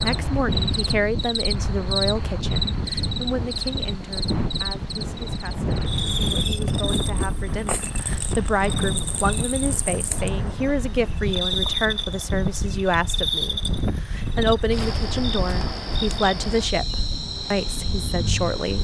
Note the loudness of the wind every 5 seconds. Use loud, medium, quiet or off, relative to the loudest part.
loud, loud, loud, medium.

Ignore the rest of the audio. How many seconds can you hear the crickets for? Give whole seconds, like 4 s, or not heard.
19 s.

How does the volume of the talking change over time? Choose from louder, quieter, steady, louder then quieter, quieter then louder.
quieter then louder.